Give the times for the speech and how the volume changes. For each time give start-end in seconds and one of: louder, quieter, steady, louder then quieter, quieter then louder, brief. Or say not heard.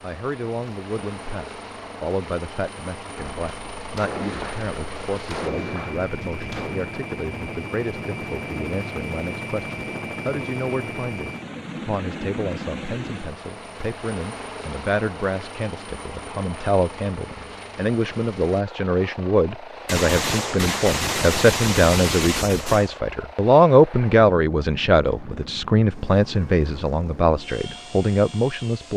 0.0-28.9 louder.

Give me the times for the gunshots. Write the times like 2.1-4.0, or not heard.
3.1-6.8, 19.9-23.0.